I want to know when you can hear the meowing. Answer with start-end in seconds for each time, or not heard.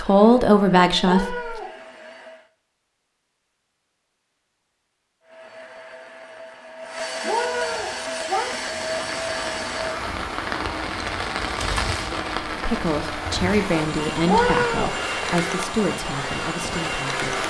1.0-1.7, 7.2-8.6, 14.2-14.9.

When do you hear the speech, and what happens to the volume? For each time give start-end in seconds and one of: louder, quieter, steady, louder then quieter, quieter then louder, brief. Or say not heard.
0.0-1.6 brief
12.6-17.4 quieter.